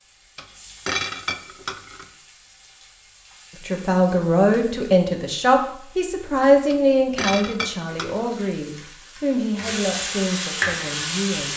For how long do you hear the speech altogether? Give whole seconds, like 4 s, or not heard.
8 s.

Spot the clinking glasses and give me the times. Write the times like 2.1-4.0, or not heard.
0.3-2.0, 6.7-8.3.